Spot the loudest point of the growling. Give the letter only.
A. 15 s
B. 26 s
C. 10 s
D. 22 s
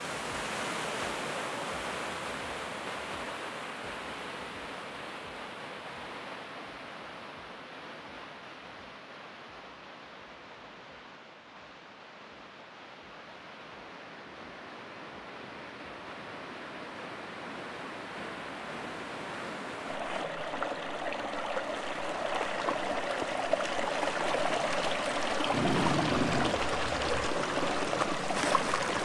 B.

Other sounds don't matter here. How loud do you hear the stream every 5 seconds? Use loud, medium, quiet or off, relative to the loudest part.
medium, quiet, quiet, medium, loud, loud.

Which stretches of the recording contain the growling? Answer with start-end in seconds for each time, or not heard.
25.5-27.3.